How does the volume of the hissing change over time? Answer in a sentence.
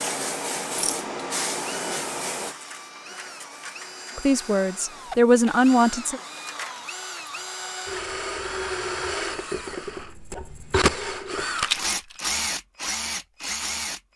The loudness of the hissing goes down.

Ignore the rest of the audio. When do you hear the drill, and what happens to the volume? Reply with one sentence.
The drill can be heard from 0.0 to 14.1 s, getting louder.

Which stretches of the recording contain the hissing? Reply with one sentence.
You can hear the hissing from 0.0 to 6.7 s.